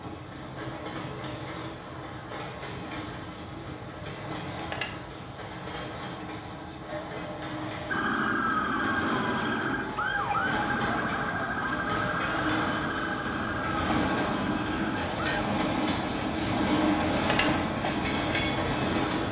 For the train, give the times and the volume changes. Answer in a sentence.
You can hear the train from 0.0 to 19.2 s, getting louder.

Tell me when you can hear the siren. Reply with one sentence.
The siren can be heard from 7.9 to 15.2 s.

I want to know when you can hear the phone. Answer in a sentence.
The phone can be heard from 4.5 to 5.0 s and from 17.1 to 17.6 s.